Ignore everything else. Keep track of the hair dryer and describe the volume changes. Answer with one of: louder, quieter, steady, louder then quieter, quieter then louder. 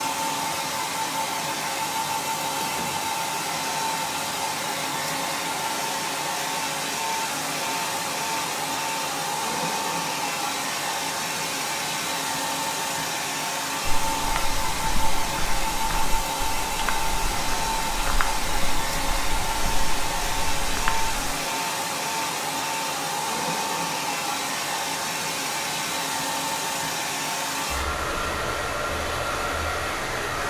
steady.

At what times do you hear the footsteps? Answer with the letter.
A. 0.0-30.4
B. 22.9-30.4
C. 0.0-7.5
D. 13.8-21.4
D.